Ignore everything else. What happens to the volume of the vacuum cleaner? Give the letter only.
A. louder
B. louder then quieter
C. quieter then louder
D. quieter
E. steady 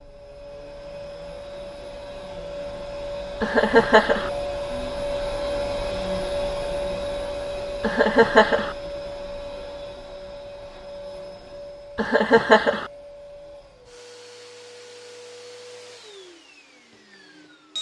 B.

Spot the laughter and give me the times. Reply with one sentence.
You can hear the laughter from 3.4 to 4.3 s, from 7.8 to 8.8 s and from 11.9 to 12.9 s.